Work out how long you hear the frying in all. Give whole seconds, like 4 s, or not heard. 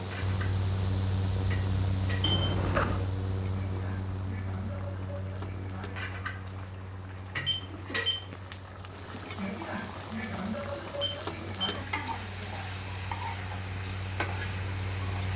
15 s.